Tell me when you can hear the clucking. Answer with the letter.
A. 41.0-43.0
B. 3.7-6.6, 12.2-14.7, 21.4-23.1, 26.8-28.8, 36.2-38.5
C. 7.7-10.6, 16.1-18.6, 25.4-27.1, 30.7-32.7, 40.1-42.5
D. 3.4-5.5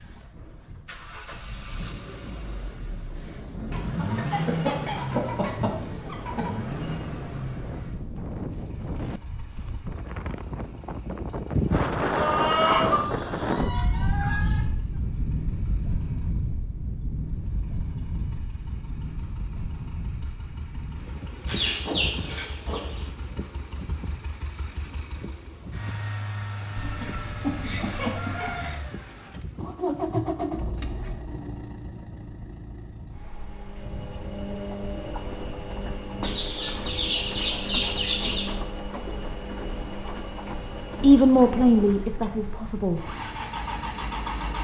B.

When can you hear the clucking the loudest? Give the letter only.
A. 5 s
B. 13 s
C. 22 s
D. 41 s
B.